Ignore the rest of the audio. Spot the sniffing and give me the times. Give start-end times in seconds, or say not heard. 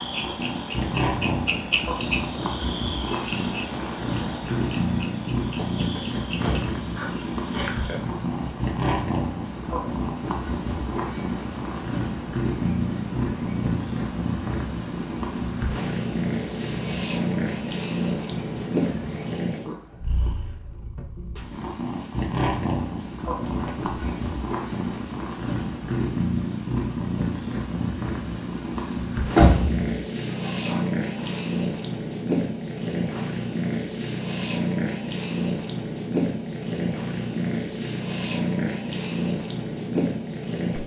6.3-7.8, 30.4-31.4.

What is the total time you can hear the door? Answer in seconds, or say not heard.
3 s.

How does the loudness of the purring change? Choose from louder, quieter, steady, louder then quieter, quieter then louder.
steady.